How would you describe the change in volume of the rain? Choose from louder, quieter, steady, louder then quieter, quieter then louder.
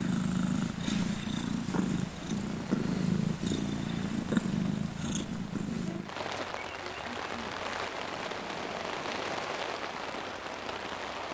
louder.